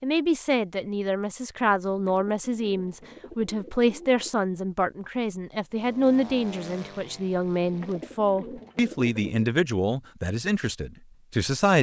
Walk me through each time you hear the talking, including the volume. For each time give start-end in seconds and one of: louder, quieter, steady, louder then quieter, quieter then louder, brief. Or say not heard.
0.0-11.7 steady.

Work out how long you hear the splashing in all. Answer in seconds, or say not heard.
not heard.